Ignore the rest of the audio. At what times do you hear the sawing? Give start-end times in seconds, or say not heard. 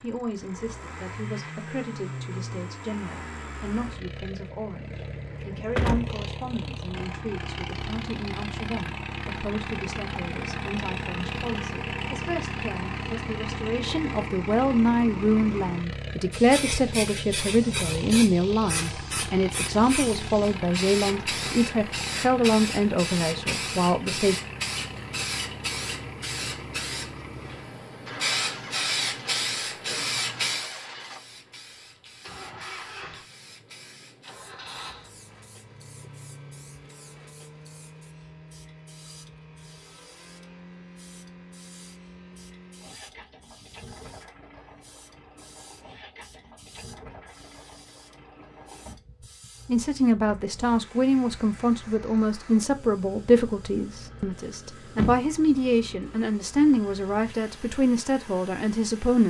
not heard.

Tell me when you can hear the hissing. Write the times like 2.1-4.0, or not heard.
16.3-59.2.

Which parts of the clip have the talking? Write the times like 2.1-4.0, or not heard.
0.0-24.4, 49.6-59.2.